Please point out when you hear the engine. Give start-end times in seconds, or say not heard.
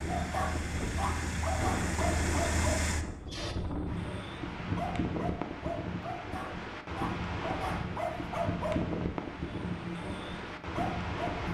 0.0-3.5.